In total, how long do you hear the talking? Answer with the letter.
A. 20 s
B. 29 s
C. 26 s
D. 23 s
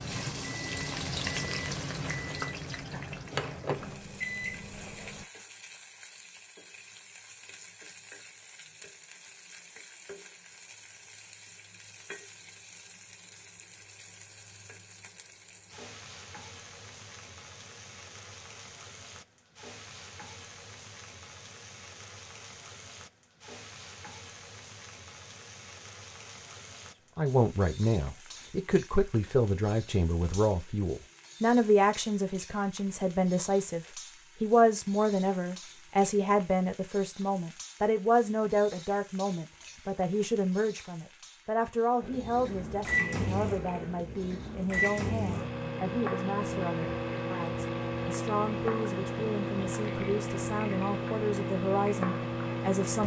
C.